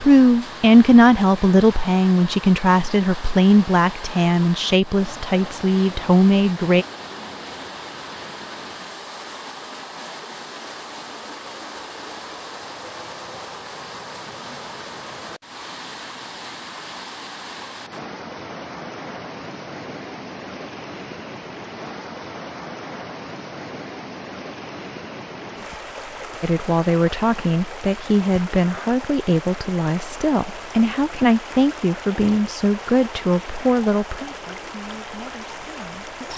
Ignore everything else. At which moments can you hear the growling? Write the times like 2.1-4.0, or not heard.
not heard.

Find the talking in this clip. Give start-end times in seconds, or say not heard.
0.0-6.8, 26.4-36.3.